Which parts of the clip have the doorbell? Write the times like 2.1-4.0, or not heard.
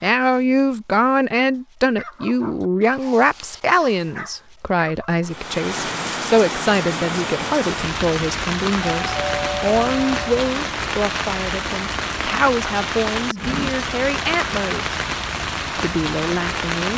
8.9-10.3.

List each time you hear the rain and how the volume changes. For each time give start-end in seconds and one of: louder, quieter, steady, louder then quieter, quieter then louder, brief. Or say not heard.
5.2-16.9 steady.